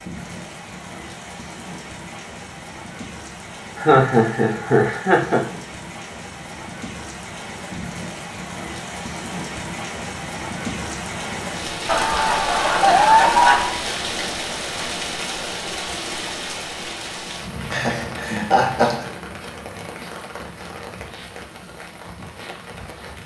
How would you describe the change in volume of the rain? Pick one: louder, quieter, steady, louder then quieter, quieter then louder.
louder then quieter.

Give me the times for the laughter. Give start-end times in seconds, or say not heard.
3.8-5.5, 11.8-13.8, 17.7-19.1.